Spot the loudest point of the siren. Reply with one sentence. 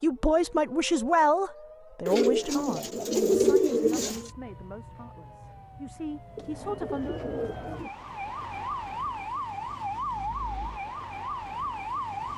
The loudest moment of the siren is at 10 seconds.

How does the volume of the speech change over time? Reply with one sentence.
The volume of the speech goes down, then up.